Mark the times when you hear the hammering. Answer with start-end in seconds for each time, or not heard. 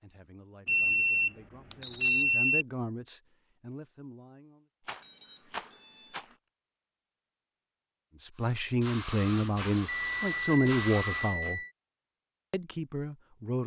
not heard.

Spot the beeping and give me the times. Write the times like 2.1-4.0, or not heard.
0.7-2.6, 5.0-6.3, 9.8-11.7.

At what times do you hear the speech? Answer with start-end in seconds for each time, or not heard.
0.0-4.7, 8.2-11.6, 12.5-13.6.